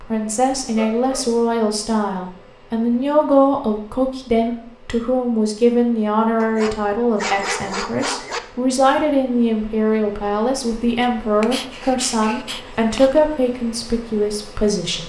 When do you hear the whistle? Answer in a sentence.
The whistle can't be heard in this clip.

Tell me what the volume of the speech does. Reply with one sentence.
The loudness of the speech stays about the same.